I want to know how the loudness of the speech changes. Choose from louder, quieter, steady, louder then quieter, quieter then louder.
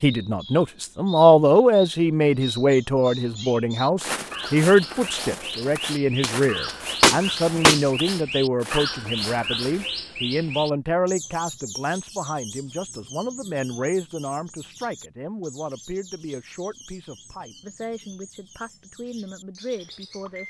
quieter.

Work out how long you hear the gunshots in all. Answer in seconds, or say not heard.
2 s.